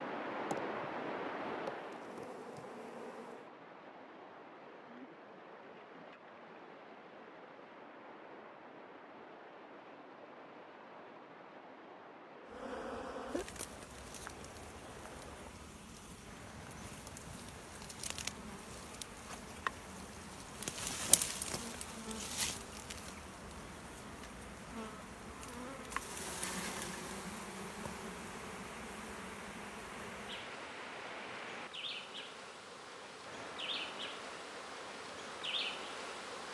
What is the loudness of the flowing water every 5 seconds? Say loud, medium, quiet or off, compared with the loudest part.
loud, medium, medium, medium, medium, medium, medium, medium.